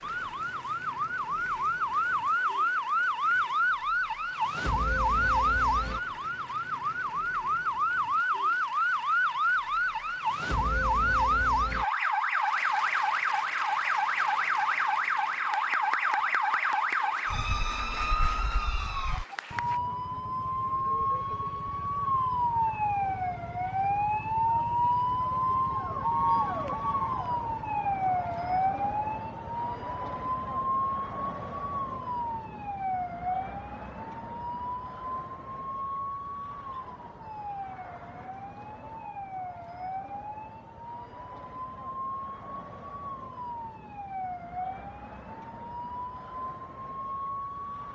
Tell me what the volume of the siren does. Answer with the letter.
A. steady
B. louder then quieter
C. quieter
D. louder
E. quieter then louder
C.